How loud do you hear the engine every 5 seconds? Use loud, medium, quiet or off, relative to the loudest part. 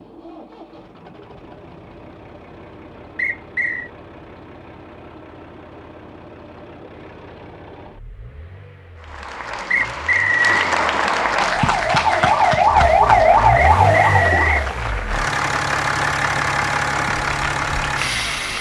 quiet, quiet, medium, loud.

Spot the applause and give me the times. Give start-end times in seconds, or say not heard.
9.0-18.5.